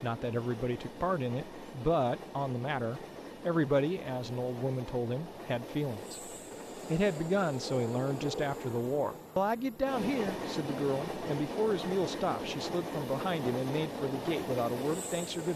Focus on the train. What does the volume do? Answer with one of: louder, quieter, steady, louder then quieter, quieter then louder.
louder.